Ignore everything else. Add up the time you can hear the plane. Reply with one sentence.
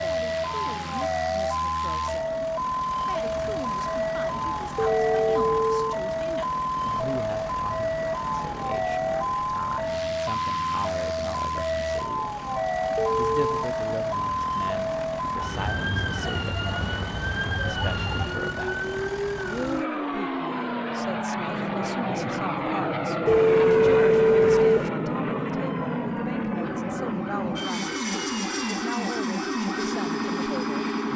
The plane can be heard for 31 seconds in total.